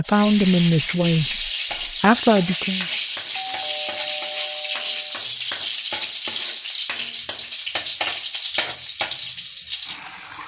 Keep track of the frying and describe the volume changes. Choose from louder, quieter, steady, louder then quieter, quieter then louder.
steady.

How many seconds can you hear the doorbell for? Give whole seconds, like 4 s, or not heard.
2 s.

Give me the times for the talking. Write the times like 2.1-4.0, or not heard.
0.0-2.9.